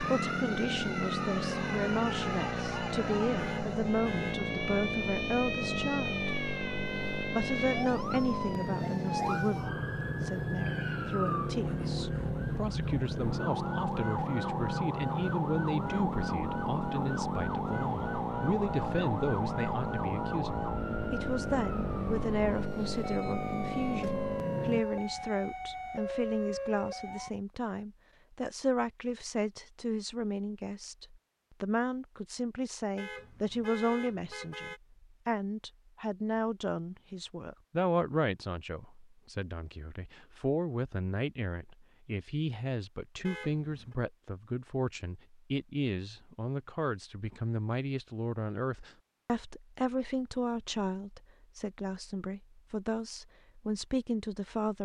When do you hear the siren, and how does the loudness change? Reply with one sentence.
The siren can be heard from 0.0 to 27.3 s, at a steady volume.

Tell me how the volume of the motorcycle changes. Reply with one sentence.
The loudness of the motorcycle stays about the same.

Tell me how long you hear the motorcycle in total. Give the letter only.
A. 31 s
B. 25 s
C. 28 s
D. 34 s
B.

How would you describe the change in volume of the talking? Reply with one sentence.
The volume of the talking stays about the same.